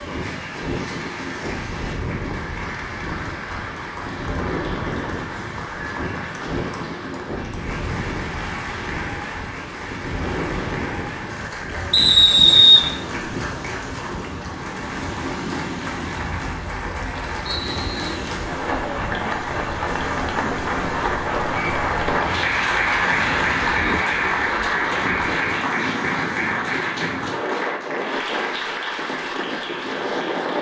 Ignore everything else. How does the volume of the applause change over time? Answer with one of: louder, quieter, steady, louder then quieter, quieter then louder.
louder.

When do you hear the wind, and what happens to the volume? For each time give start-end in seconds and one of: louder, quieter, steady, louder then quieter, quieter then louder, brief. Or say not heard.
0.0-30.5 steady.